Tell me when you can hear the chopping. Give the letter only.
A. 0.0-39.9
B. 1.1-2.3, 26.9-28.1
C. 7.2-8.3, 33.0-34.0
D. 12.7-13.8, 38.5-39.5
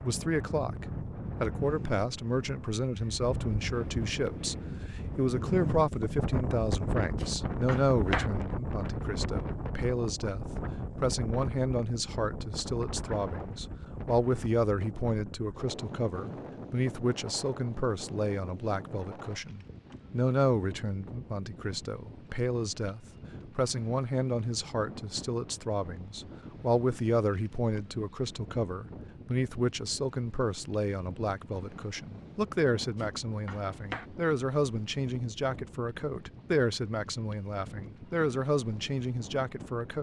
C.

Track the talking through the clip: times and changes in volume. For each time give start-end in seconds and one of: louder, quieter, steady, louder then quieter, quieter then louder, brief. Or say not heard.
0.0-39.9 steady.